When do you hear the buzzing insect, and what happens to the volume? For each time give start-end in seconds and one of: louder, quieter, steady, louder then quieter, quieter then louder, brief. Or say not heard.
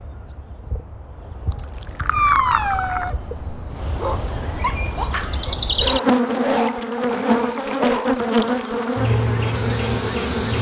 0.0-10.5 louder.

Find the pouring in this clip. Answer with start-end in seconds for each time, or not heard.
1.4-3.1, 6.6-8.9.